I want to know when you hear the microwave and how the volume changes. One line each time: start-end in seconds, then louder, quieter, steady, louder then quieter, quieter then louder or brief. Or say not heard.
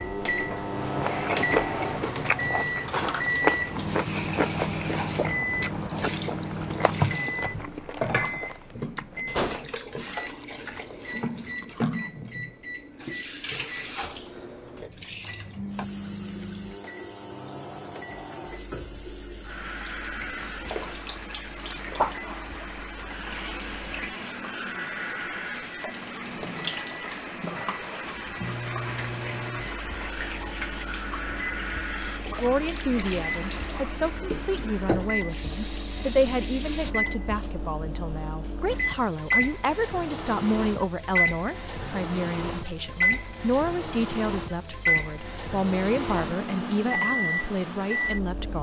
0.0-48.5 quieter then louder.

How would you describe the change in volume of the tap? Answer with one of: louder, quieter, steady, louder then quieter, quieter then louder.
steady.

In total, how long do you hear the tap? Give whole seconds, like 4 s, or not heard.
37 s.